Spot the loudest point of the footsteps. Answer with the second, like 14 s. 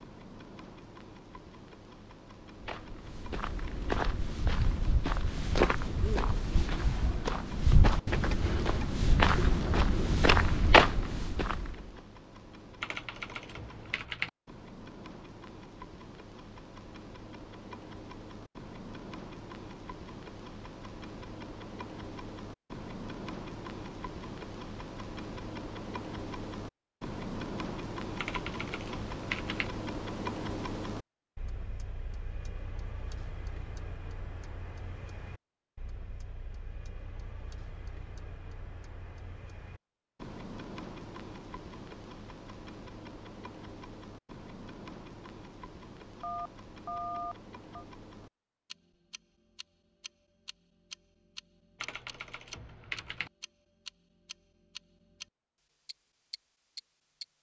11 s.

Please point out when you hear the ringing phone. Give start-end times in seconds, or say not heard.
46.2-47.9.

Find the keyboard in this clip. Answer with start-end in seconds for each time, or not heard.
12.8-14.3, 28.1-29.7, 51.8-53.3.